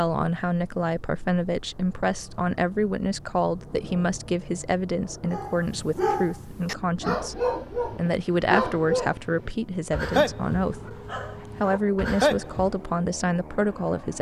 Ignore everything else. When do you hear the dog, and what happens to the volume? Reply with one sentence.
You can hear the dog from 5.3 to 12.8 s, at a steady volume.